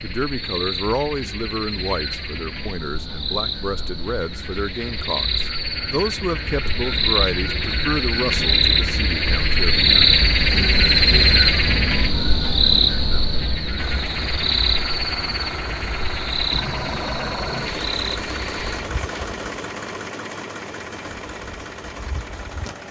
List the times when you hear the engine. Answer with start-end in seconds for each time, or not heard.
13.8-22.8.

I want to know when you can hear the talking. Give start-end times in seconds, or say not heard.
0.0-9.8.